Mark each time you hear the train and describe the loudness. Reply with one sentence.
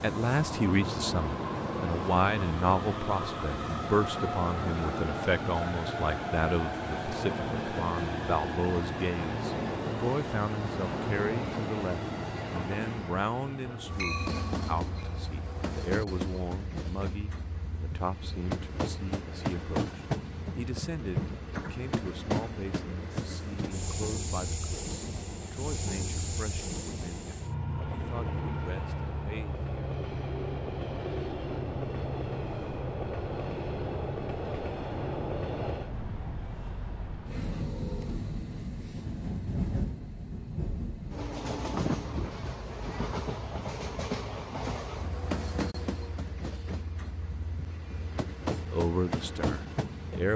You can hear the train from 0.0 to 50.3 s, at a steady volume.